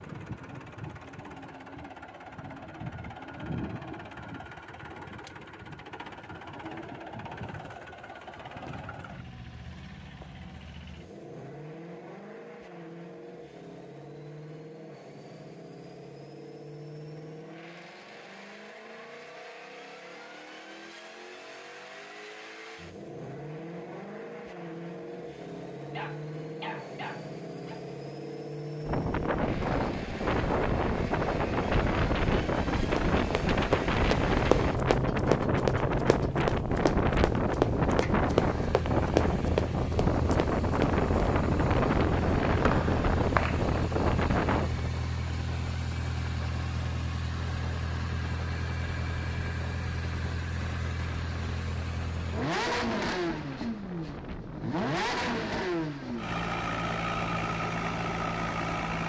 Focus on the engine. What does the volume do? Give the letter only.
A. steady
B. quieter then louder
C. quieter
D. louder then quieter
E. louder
E.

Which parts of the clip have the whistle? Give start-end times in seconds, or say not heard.
42.6-43.6.